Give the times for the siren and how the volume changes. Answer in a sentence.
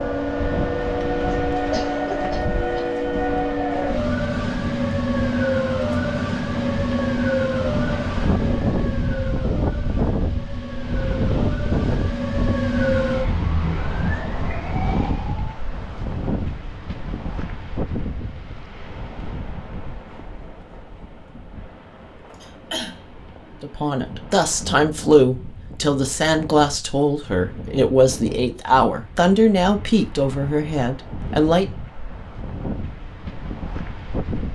The siren can be heard from 0.0 to 15.6 s, getting quieter then louder.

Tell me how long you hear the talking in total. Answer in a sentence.
You can hear the talking for 8 seconds altogether.